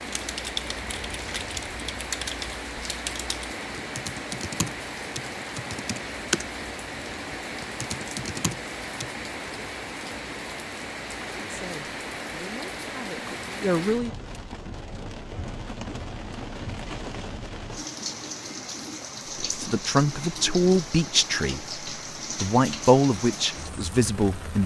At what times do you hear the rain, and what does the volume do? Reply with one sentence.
You can hear the rain from 0.0 to 24.6 s, at a steady volume.